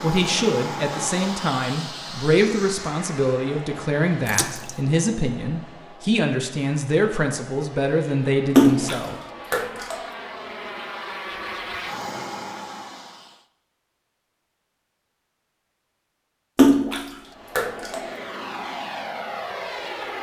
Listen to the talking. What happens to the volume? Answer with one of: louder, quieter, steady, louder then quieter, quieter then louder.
steady.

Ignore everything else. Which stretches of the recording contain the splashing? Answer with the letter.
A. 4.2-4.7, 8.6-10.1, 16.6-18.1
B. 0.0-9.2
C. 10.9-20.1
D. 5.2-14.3
A.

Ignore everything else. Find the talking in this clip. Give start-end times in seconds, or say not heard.
0.0-9.2.